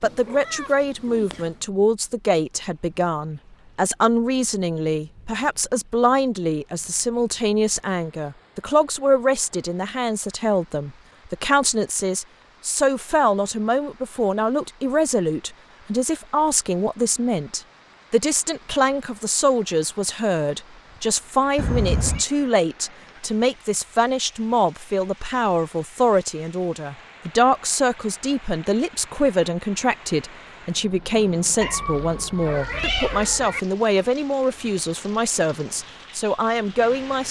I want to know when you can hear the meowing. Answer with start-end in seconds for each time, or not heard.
0.0-1.5, 21.6-22.2, 31.6-33.6.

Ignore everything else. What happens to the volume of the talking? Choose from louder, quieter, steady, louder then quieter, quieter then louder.
steady.